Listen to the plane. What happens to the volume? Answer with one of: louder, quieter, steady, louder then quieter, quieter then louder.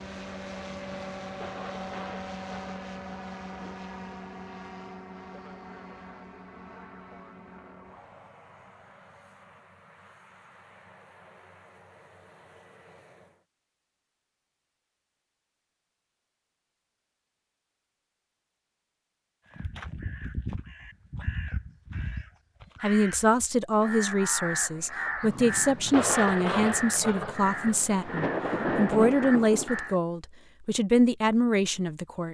quieter.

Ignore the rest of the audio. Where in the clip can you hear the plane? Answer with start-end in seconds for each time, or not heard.
0.0-13.4.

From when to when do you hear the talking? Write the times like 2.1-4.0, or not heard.
22.8-32.2.